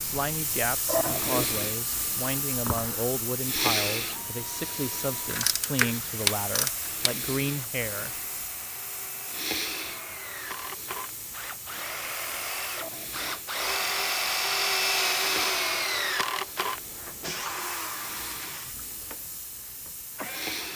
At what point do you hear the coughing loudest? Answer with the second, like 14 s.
1 s.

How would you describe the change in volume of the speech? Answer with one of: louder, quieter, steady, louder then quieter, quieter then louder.
steady.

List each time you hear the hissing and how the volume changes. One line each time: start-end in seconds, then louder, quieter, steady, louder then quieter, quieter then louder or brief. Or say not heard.
0.0-20.7 quieter.